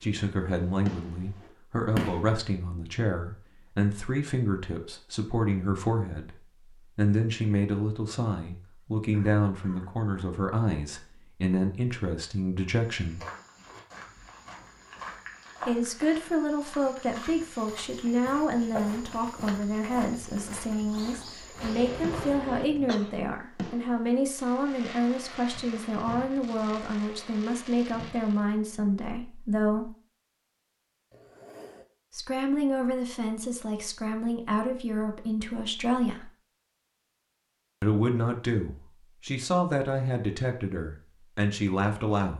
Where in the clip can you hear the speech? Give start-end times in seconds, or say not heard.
0.0-6.3, 7.0-13.2, 15.7-29.9, 32.1-36.3, 37.8-42.3.